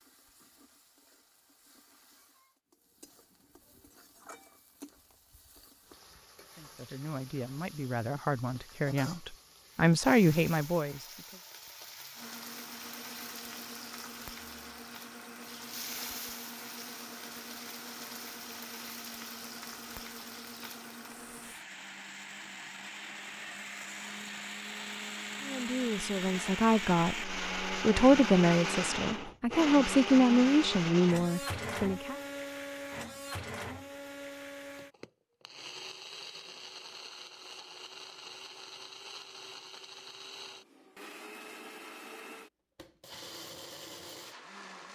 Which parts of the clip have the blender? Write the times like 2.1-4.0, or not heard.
12.2-44.8.